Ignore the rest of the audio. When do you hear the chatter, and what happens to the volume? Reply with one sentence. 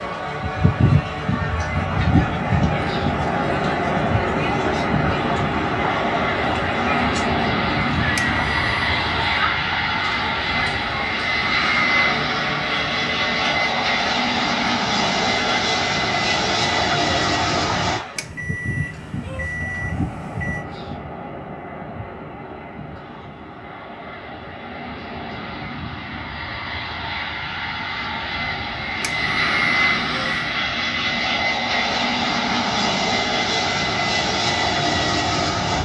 The chatter can be heard from 0.0 to 18.3 s, at a steady volume.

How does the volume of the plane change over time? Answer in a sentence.
The volume of the plane goes down, then up.